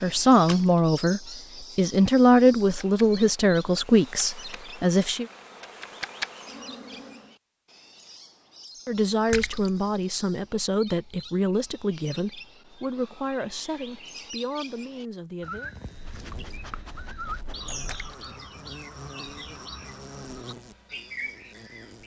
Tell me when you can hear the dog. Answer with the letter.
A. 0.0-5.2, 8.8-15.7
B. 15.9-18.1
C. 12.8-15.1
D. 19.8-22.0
B.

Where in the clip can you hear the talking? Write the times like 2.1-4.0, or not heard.
0.0-5.2, 8.8-15.7.